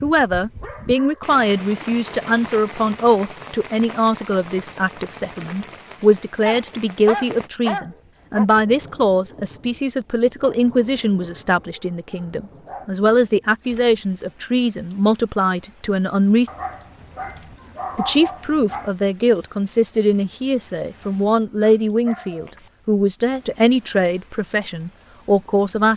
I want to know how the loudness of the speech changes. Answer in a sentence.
The loudness of the speech stays about the same.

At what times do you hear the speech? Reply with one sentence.
You can hear the speech from 0.0 to 16.5 s and from 17.9 to 25.9 s.